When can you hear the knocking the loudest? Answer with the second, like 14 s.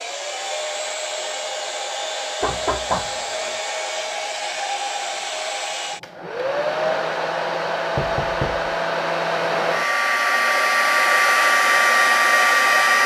3 s.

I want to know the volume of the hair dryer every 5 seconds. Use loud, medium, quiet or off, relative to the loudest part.
medium, medium, loud.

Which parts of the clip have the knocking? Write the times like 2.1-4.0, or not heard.
2.4-3.6, 8.0-8.7.